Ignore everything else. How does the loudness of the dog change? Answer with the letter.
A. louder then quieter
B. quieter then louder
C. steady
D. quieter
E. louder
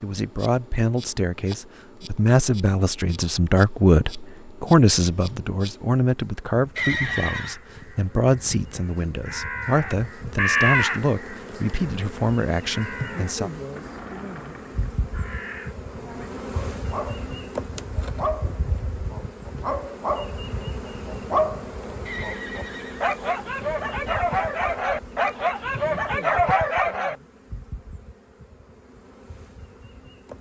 E.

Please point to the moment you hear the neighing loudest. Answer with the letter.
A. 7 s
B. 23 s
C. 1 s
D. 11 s
A.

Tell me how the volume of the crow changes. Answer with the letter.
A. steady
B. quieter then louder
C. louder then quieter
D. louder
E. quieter
C.